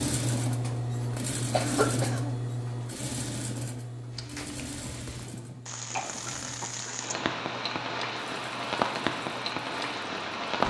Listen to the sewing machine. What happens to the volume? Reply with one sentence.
The loudness of the sewing machine goes down.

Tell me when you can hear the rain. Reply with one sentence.
The rain can be heard from 4.1 to 10.6 s.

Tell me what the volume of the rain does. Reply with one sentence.
The volume of the rain goes up.